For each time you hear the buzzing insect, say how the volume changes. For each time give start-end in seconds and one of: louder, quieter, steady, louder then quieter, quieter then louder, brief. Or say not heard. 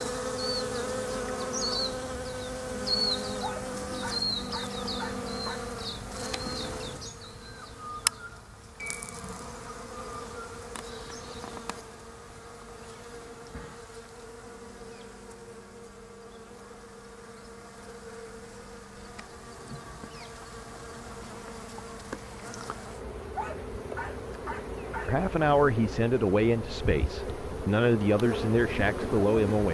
0.0-29.6 quieter then louder.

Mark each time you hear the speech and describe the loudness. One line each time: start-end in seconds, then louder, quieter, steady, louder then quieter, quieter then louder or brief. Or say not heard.
25.1-29.6 quieter then louder.